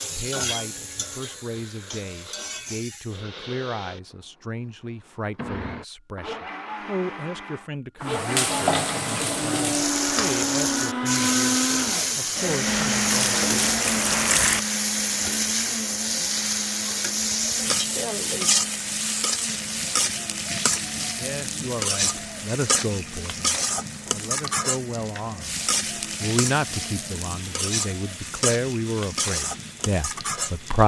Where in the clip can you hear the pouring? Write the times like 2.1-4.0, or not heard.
12.7-14.6.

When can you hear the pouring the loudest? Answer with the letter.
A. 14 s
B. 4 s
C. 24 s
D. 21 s
A.